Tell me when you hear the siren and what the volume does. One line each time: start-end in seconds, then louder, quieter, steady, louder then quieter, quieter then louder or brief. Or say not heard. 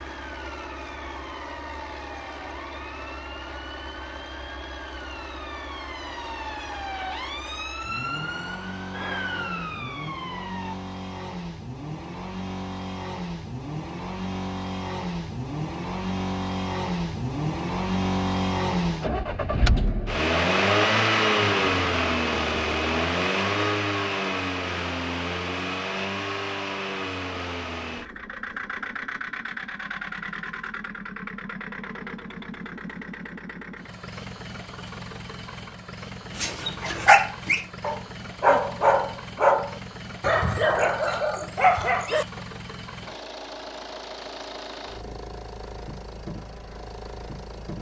0.0-10.8 louder.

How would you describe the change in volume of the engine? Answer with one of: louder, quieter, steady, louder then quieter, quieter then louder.
louder then quieter.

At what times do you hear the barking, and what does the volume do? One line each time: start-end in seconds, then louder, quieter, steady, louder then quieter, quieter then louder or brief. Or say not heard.
36.4-42.4 steady.